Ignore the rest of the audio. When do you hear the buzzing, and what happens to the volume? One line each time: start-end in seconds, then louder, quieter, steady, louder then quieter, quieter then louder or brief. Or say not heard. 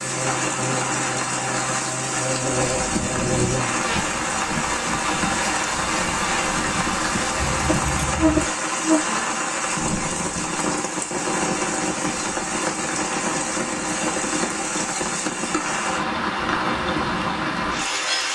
0.0-9.4 louder.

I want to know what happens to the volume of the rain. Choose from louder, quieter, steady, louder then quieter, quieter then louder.
steady.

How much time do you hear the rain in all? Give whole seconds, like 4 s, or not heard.
18 s.